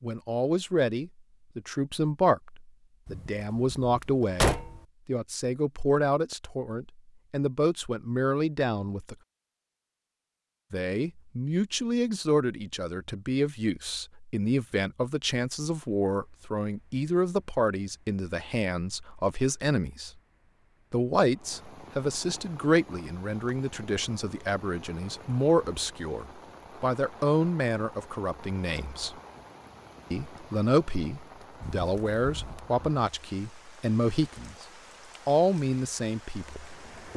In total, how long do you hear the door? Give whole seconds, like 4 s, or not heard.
3 s.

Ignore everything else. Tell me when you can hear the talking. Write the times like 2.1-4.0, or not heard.
0.0-9.2, 10.7-20.1, 20.9-29.1, 30.1-34.5, 35.2-37.1.